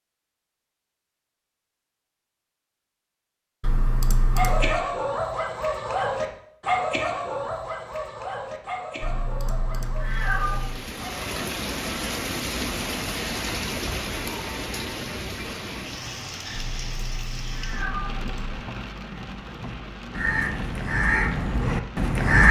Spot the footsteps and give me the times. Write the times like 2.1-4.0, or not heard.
not heard.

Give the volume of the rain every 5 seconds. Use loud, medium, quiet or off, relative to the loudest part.
off, off, loud, medium, medium.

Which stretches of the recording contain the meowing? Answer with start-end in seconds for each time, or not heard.
3.6-4.8, 9.0-10.8, 16.5-18.6.